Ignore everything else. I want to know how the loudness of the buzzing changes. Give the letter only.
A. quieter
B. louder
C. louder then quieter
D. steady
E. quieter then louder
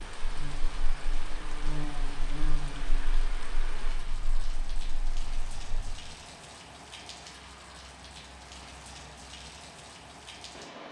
C.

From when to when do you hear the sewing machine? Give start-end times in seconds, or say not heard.
not heard.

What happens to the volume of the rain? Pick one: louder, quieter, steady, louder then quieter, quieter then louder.
steady.